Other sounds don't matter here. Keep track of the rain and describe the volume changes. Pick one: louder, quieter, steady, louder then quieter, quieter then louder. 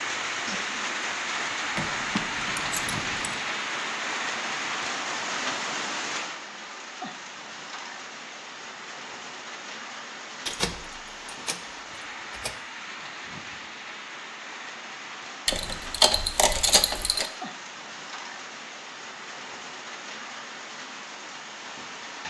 quieter.